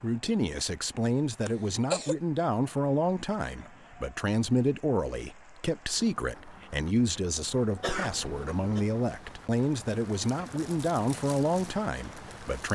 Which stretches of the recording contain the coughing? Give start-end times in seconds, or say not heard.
1.4-2.1, 7.8-8.8.